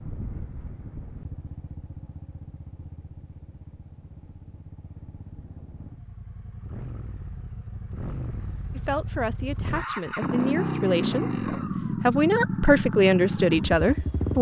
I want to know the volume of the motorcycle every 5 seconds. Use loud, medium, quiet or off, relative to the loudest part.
quiet, medium, loud.